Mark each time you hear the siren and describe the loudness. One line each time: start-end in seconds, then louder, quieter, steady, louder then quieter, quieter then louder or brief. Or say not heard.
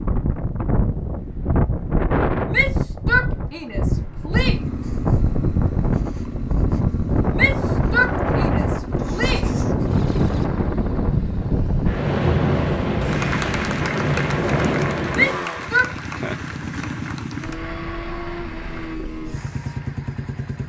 not heard.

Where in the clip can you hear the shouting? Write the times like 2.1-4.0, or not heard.
2.5-4.7, 7.3-9.6, 15.1-15.9.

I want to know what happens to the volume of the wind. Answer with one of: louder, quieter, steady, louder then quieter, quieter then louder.
steady.